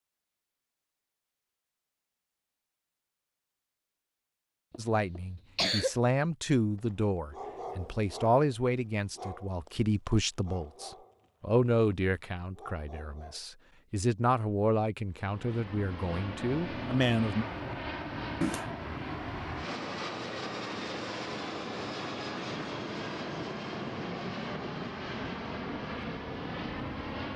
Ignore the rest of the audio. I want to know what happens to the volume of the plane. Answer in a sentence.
The volume of the plane stays about the same.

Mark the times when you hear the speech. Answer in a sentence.
The speech can be heard from 4.8 to 17.4 s.